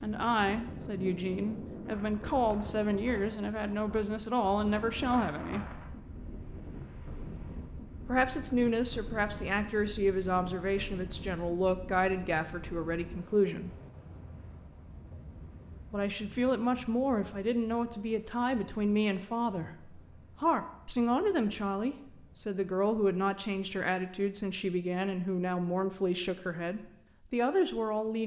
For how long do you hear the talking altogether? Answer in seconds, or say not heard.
24 s.